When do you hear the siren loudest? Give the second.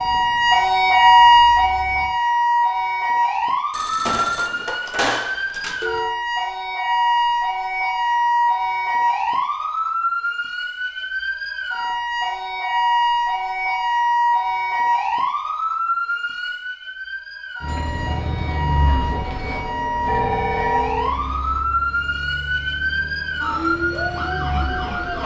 1 s.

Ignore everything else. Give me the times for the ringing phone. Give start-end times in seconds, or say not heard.
3.7-6.2, 20.1-21.4.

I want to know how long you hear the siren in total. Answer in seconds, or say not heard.
25 s.